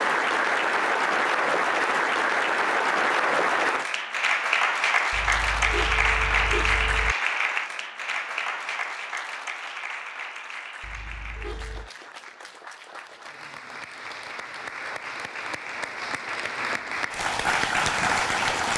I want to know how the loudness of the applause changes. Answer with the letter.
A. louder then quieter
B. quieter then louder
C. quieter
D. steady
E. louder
B.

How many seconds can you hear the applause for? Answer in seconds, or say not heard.
19 s.